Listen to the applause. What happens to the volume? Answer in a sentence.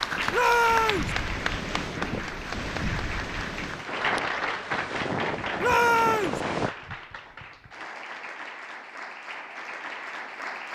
The volume of the applause goes down.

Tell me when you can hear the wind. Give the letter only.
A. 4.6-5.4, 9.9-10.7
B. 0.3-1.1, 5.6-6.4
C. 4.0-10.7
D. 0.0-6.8
D.